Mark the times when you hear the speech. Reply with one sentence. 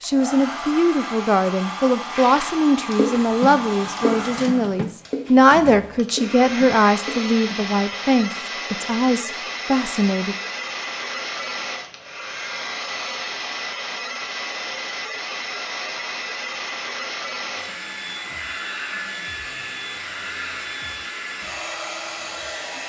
You can hear the speech from 0.0 to 10.3 s.